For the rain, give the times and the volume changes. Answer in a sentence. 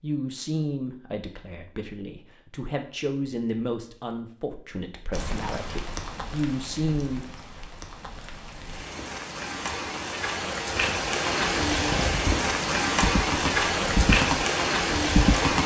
You can hear the rain from 5.1 to 15.6 s, getting louder.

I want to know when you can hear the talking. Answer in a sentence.
The talking can be heard from 0.0 to 7.2 s.